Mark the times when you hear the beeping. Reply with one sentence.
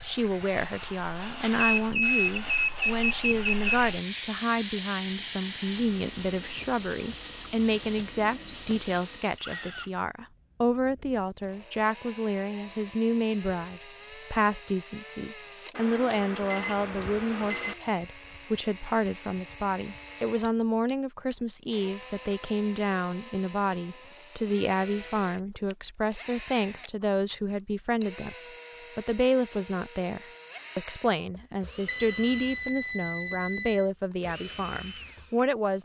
You can hear the beeping from 1.6 to 3.6 s, from 15.8 to 17.8 s and from 31.9 to 33.9 s.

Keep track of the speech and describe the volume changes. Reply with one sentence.
The loudness of the speech stays about the same.